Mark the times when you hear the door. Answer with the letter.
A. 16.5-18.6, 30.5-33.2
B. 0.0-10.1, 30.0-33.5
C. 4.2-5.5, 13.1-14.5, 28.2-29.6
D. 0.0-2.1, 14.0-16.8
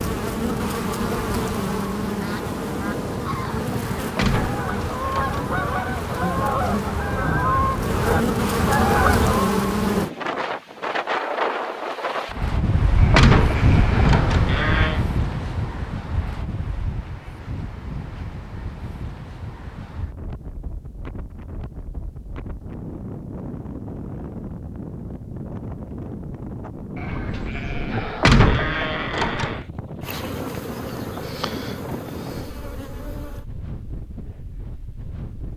C.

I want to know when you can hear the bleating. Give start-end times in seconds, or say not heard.
12.9-15.1, 26.9-29.7.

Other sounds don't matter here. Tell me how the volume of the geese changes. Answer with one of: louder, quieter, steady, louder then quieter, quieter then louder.
louder.